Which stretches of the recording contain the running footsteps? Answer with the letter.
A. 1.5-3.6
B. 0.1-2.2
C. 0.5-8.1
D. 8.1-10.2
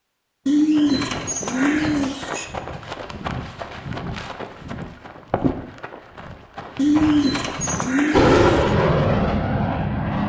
C.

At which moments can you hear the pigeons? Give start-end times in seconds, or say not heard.
0.5-2.5, 6.8-8.7.